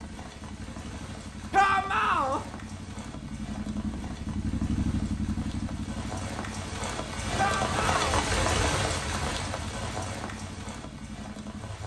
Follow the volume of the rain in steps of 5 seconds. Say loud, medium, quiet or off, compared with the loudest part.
quiet, loud, medium.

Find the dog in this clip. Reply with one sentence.
You can't hear the dog here.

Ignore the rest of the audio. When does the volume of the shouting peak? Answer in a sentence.
The loudest moment of the shouting is at 2 seconds.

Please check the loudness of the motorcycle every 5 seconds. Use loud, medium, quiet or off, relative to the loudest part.
loud, loud, medium.